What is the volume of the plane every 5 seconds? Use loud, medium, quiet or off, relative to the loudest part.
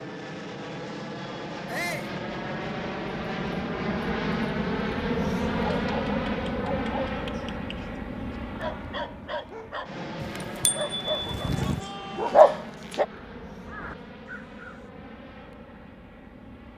loud, loud, medium, quiet.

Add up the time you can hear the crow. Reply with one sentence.
You can hear the crow for 2 seconds altogether.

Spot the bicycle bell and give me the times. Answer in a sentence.
You can hear the bicycle bell from 10.2 to 11.8 s.